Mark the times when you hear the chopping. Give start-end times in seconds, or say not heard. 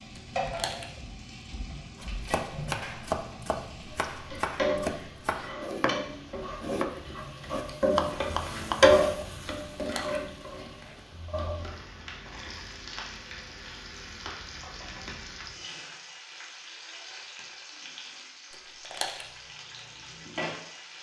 1.9-9.0.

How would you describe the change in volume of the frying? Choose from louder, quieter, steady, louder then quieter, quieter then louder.
louder then quieter.